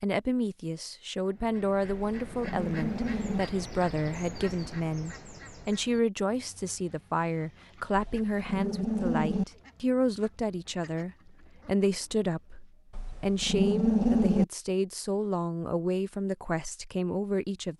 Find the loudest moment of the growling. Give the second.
14 s.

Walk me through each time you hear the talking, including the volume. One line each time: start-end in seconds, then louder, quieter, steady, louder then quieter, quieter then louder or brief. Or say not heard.
0.0-17.7 steady.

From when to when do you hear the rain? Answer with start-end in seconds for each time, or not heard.
not heard.